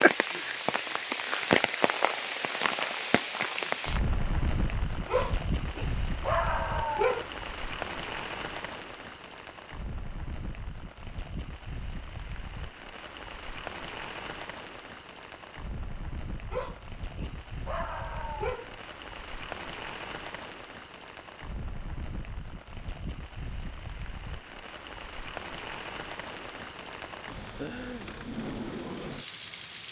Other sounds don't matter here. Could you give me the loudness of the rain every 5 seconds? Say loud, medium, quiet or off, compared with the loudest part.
loud, medium, quiet, quiet, quiet, medium.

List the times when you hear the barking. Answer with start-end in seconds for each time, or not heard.
5.0-7.2, 16.4-18.9.